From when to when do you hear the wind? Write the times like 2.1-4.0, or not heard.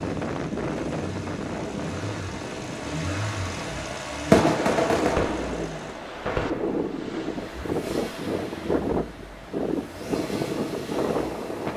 0.0-11.7.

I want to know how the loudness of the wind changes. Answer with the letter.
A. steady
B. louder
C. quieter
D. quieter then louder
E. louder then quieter
D.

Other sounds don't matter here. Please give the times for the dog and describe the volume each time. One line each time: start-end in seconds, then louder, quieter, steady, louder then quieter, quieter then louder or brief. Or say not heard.
not heard.